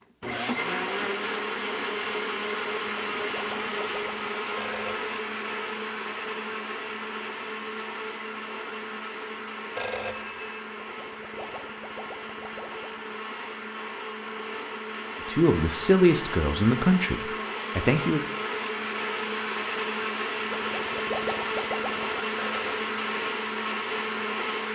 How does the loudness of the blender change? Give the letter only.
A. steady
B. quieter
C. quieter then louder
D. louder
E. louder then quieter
C.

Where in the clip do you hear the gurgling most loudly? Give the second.
21 s.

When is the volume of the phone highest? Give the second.
10 s.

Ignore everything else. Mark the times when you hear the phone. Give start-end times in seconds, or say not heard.
4.5-5.6, 9.8-10.7, 22.4-22.9.